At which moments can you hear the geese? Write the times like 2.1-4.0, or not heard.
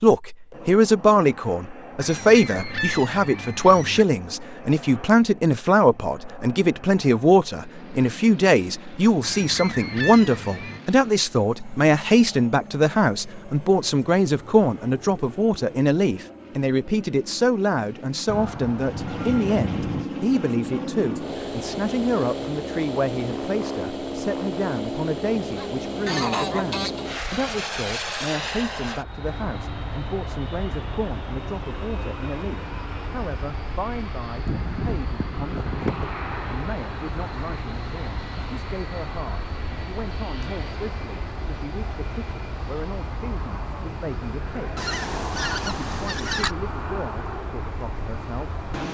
2.0-4.0, 9.2-10.8, 18.2-20.1, 25.6-27.1, 34.5-36.1, 44.8-46.5.